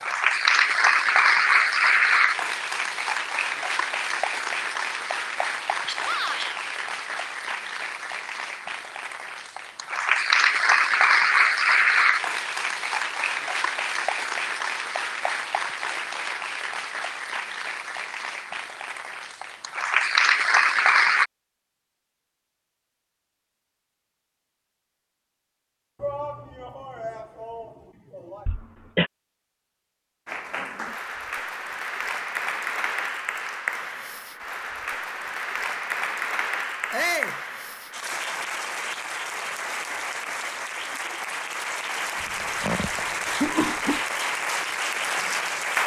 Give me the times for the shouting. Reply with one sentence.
The shouting can be heard from 6.0 to 6.6 s, from 26.0 to 28.4 s and from 36.9 to 37.4 s.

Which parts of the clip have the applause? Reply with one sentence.
The applause can be heard from 0.0 to 21.3 s and from 30.2 to 45.8 s.